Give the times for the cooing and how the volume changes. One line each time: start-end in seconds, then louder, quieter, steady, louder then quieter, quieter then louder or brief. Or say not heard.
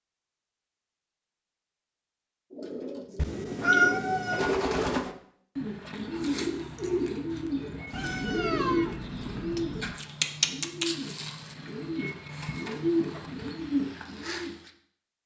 2.5-14.7 steady.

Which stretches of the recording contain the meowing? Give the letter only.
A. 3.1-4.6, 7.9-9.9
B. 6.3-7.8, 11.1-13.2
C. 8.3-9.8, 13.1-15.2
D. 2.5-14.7
A.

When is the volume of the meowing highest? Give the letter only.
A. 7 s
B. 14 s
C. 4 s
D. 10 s
C.